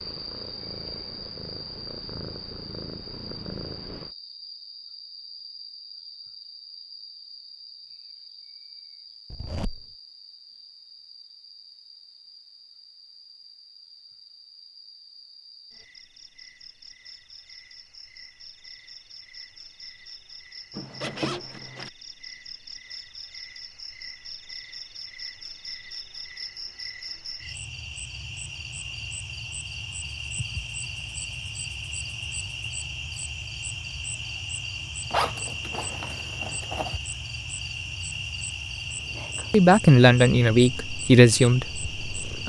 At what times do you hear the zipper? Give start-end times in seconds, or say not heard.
9.3-9.8, 20.8-21.9, 35.1-37.0.